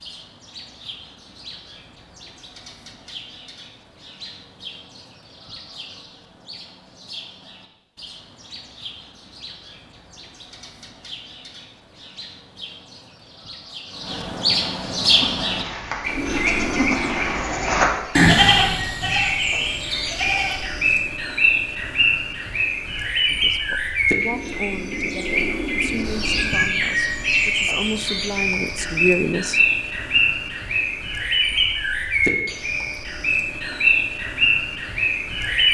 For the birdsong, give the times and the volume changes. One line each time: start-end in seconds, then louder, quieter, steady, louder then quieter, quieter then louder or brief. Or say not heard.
0.0-35.7 louder.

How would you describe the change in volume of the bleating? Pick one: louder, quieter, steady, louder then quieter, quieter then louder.
louder then quieter.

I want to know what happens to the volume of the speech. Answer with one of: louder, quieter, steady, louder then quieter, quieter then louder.
quieter then louder.